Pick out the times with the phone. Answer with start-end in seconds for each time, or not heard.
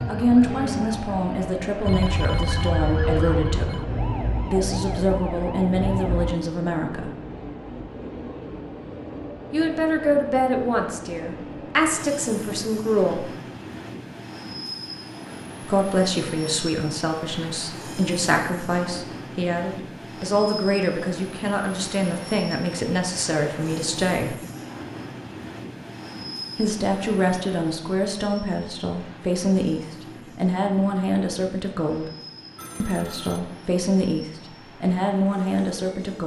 1.9-3.9, 32.5-33.4.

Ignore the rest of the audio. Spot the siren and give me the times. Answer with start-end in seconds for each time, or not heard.
0.0-6.3.